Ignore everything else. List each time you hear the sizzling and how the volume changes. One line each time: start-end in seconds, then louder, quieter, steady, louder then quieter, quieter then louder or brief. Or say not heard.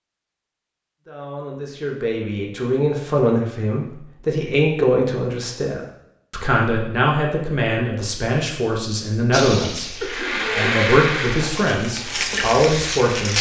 9.3-13.3 louder.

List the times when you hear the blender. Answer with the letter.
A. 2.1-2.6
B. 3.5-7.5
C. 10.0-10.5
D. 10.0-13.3
D.